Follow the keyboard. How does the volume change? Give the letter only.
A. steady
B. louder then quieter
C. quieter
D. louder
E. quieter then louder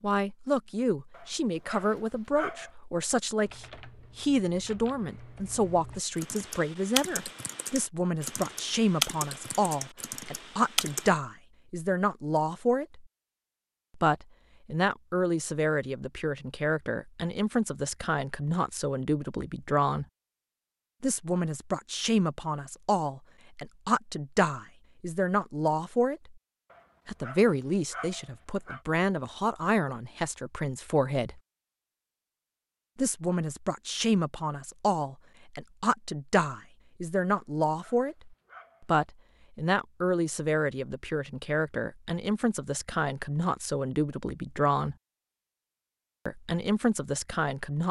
B.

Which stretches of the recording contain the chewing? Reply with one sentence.
You can't hear the chewing here.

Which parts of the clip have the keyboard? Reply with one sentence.
You can hear the keyboard from 3.5 to 11.1 s.